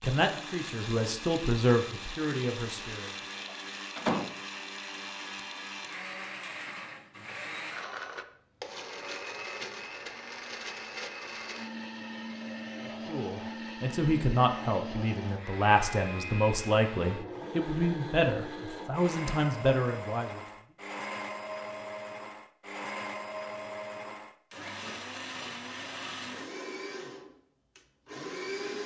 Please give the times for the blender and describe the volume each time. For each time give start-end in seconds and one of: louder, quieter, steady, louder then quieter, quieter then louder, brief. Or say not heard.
0.0-28.8 steady.